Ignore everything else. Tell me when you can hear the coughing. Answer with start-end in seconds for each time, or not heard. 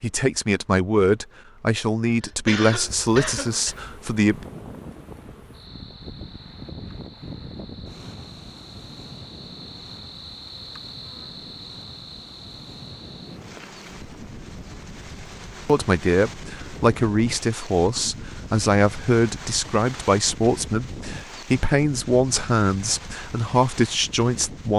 2.2-3.8.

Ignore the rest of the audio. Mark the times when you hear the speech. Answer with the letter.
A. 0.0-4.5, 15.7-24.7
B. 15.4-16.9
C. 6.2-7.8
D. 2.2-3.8
A.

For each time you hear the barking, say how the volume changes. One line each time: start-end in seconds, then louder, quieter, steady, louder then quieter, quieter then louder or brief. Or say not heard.
not heard.